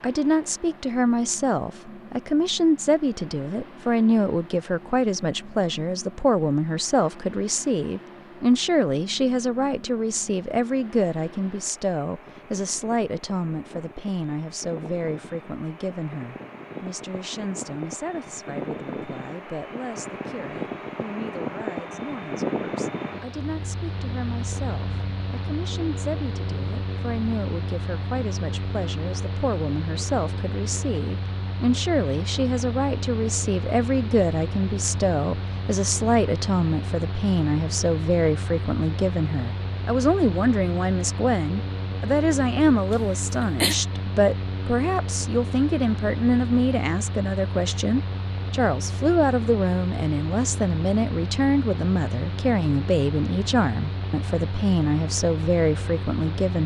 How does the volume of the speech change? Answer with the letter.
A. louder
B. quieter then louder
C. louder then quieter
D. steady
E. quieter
B.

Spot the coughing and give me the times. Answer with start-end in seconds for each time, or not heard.
42.9-43.8.